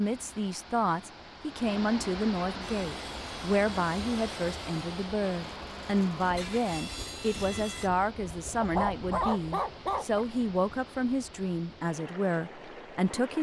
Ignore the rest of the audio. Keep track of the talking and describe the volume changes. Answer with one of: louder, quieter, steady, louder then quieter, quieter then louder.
steady.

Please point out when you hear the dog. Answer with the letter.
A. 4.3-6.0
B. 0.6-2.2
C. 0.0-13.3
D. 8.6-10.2
D.